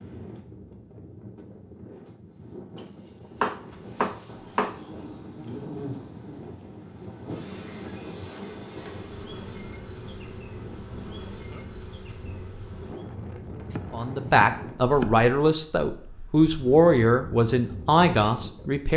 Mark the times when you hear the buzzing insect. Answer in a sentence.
The buzzing insect can be heard from 3.6 to 13.1 s.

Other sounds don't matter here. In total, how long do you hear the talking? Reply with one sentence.
You can hear the talking for 5 seconds altogether.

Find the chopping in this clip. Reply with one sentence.
The chopping can be heard from 2.8 to 4.8 s and from 13.7 to 15.2 s.